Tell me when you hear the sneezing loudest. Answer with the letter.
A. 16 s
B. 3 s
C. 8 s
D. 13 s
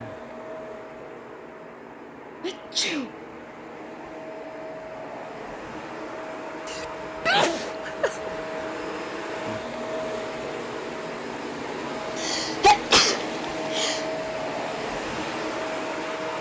D.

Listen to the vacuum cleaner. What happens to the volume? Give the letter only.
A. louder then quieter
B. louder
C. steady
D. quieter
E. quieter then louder
B.